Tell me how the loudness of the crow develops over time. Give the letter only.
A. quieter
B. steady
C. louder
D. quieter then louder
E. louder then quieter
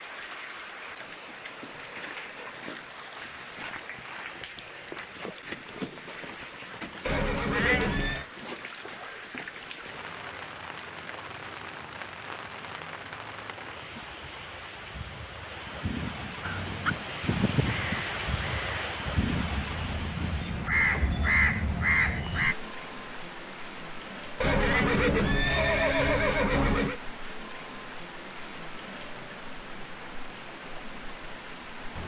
D.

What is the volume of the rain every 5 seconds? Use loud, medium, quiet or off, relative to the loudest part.
medium, medium, medium, loud, medium, medium, medium.